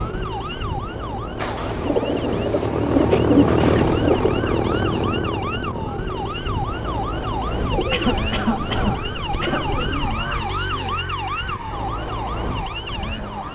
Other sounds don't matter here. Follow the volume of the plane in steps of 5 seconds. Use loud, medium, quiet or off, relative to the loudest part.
loud, medium, quiet.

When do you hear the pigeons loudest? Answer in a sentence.
The volume of the pigeons peaks at 3 seconds.